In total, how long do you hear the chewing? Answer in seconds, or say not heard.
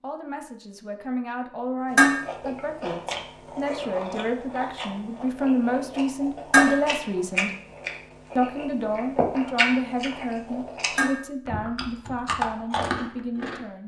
12 s.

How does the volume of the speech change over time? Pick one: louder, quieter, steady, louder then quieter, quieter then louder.
louder then quieter.